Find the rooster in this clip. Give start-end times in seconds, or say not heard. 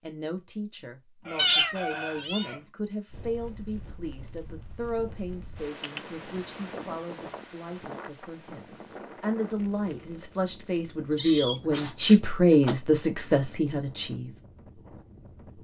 1.2-2.7.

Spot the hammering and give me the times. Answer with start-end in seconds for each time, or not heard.
not heard.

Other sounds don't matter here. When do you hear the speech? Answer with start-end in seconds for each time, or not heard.
0.0-14.3.